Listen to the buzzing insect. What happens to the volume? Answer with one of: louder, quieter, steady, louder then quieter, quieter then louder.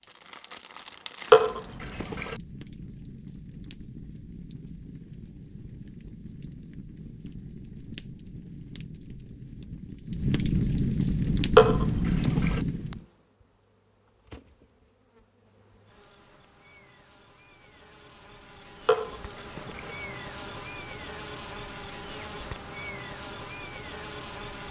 louder.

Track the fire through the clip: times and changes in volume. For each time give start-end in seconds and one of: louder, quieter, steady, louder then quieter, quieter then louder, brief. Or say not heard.
0.0-13.1 louder.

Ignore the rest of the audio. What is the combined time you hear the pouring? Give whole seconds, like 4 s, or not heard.
3 s.